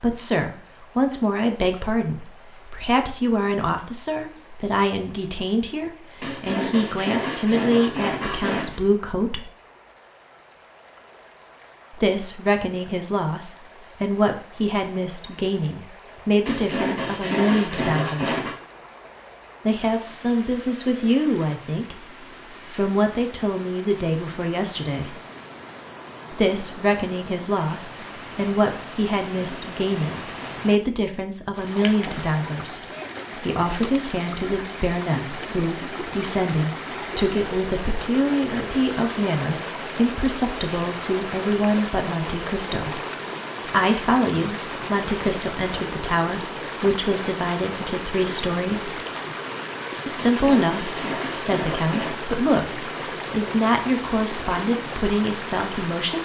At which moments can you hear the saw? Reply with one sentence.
The saw can be heard from 6.2 to 8.9 s, from 16.4 to 18.6 s, from 29.3 to 30.6 s and from 50.1 to 52.1 s.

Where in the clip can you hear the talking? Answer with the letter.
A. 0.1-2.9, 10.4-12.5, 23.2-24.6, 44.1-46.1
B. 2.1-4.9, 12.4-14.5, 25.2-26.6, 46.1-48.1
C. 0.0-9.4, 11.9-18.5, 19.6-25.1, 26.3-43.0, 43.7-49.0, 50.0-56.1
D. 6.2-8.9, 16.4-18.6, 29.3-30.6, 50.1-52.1
C.